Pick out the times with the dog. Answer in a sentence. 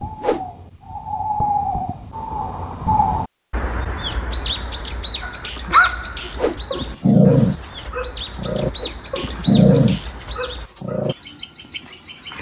The dog can be heard from 5.2 to 11.2 s.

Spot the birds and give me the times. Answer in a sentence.
The birds can be heard from 0.0 to 12.3 s.